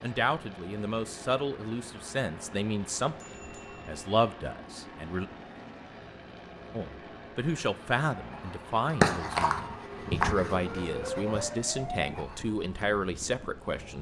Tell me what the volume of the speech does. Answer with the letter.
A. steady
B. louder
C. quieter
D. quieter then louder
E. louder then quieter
A.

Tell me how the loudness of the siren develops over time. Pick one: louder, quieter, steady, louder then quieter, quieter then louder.
quieter.